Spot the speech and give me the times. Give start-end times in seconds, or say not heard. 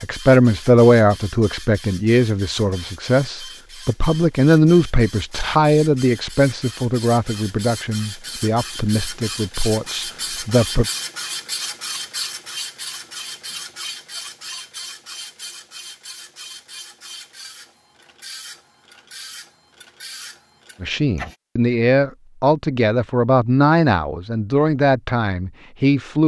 0.0-10.8, 20.8-26.2.